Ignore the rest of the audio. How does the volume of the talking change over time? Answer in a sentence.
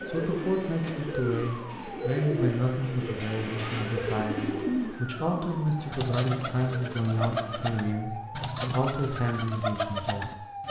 The loudness of the talking stays about the same.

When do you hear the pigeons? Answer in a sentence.
You can hear the pigeons from 0.0 to 10.6 s.